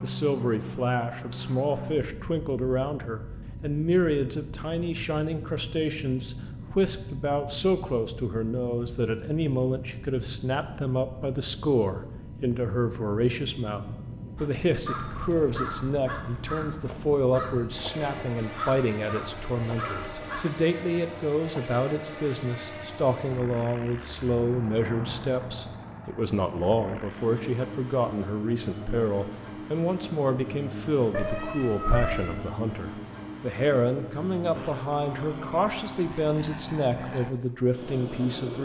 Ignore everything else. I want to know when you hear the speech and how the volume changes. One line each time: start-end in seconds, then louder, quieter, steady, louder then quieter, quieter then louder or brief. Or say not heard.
0.0-38.5 steady.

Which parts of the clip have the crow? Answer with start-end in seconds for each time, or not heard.
14.3-20.4.